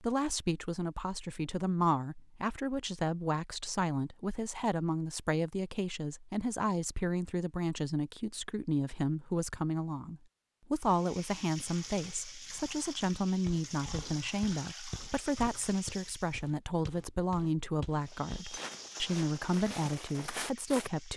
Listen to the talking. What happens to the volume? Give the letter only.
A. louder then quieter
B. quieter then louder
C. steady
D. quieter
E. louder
C.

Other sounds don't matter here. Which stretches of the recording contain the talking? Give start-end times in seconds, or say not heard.
0.0-21.1.